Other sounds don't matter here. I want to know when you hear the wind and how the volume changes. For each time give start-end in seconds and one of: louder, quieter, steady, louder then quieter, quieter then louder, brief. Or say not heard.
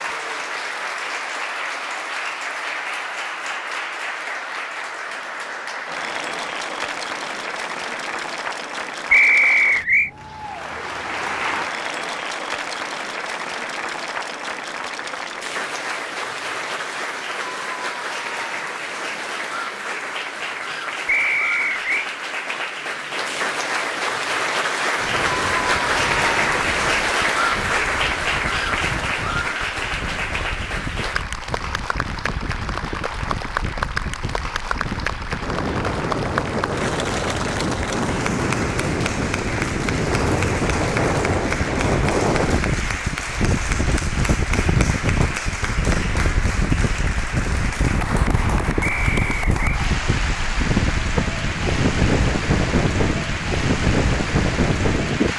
24.9-55.3 louder.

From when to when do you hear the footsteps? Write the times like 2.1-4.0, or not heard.
not heard.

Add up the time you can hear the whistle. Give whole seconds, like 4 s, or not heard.
3 s.